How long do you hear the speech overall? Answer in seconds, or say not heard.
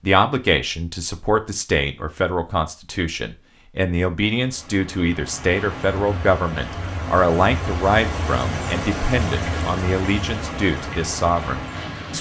12 s.